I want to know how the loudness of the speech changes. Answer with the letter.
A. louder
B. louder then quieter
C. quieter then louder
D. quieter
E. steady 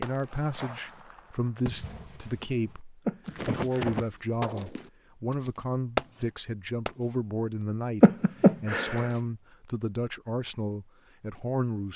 E.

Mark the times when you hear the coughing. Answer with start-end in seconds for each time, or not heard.
3.0-4.0, 8.0-9.1.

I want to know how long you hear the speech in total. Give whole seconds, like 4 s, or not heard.
12 s.